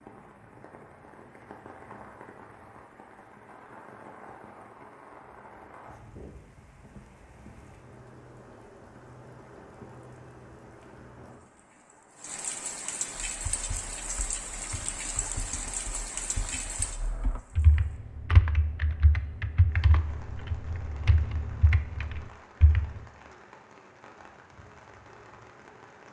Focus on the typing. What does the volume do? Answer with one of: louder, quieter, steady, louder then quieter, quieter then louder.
louder.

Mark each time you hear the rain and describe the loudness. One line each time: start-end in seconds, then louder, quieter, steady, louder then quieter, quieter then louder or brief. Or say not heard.
0.0-26.0 louder then quieter.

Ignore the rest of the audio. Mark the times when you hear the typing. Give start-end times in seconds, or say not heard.
13.2-23.0.